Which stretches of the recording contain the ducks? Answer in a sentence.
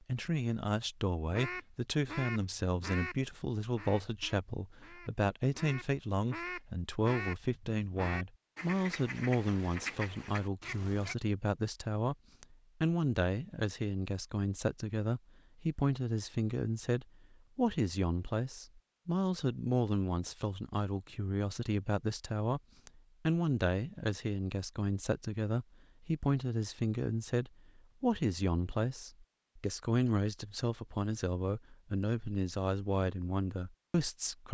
You can hear the ducks from 1.2 to 11.2 s.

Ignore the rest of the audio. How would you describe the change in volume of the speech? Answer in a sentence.
The loudness of the speech stays about the same.